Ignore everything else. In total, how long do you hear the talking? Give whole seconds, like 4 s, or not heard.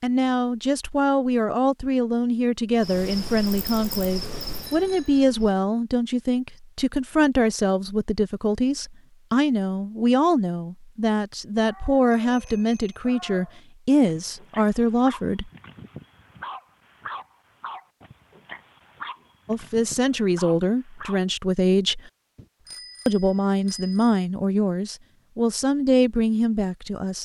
22 s.